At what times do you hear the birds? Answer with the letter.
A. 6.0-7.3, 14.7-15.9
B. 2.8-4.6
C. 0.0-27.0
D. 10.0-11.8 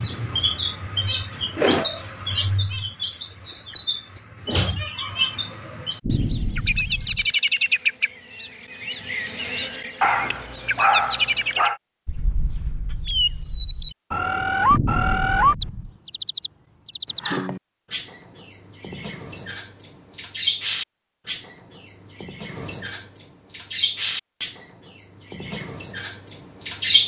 C.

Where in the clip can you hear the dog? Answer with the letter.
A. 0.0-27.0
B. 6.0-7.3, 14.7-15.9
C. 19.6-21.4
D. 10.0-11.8
D.